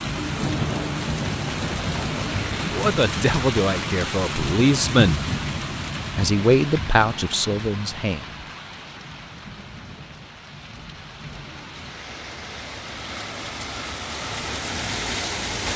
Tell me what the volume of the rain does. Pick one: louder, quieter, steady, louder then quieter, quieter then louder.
quieter then louder.